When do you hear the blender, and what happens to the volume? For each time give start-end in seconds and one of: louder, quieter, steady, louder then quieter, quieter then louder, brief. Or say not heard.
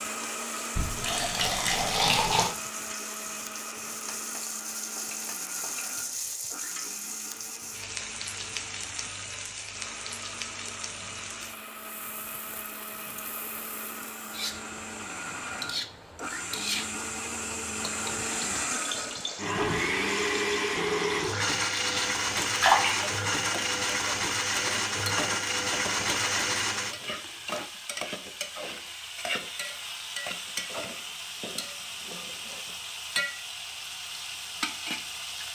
0.0-27.7 quieter then louder.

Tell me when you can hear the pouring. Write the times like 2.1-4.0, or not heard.
0.8-2.5, 22.5-23.1.